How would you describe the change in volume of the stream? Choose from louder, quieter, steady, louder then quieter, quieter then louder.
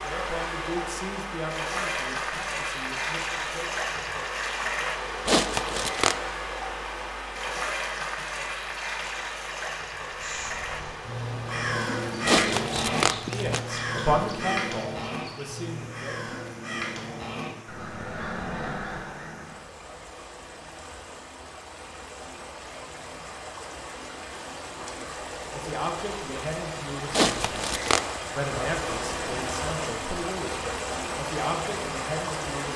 quieter then louder.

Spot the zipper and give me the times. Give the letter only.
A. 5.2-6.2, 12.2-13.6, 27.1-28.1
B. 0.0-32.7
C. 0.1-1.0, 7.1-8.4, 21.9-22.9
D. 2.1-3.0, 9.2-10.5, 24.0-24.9
A.